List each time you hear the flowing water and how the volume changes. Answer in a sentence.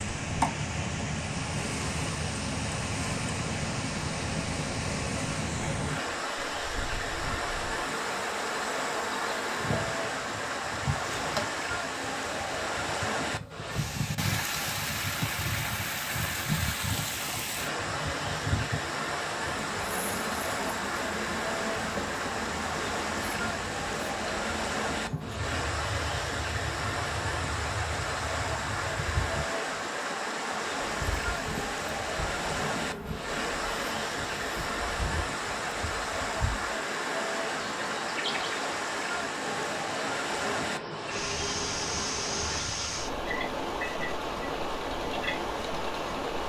The flowing water can be heard from 0.0 to 46.4 s, at a steady volume.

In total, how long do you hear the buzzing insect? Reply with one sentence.
You can hear the buzzing insect for 46 seconds altogether.